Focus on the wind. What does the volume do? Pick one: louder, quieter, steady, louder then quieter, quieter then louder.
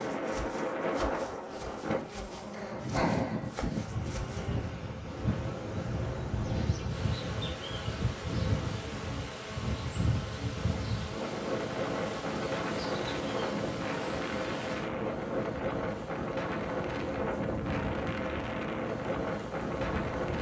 steady.